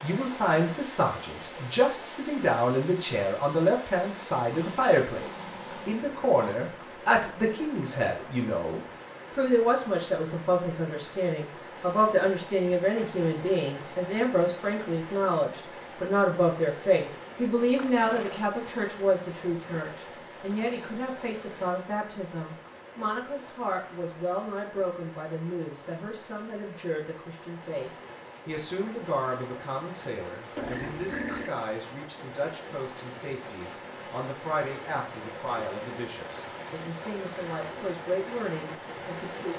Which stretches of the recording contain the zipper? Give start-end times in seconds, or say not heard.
not heard.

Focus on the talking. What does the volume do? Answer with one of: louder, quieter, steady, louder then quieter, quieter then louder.
quieter.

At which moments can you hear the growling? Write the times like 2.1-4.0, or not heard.
4.5-6.6, 17.8-18.5, 30.6-31.6.